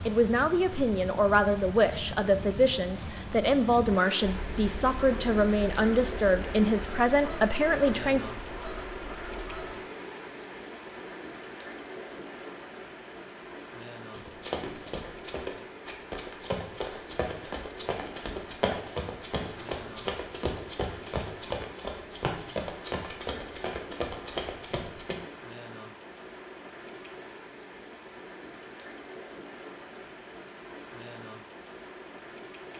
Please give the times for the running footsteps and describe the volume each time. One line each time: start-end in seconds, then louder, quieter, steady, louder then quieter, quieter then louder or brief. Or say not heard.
14.1-25.2 steady.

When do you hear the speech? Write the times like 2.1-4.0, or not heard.
0.0-8.2.